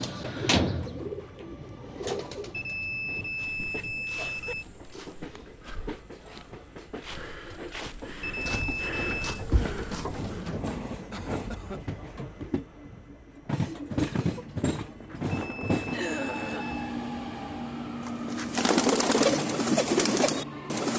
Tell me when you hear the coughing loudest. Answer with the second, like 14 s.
16 s.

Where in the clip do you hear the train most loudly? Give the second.
14 s.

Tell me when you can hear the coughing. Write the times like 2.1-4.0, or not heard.
2.5-4.5, 11.1-11.8, 15.9-16.9.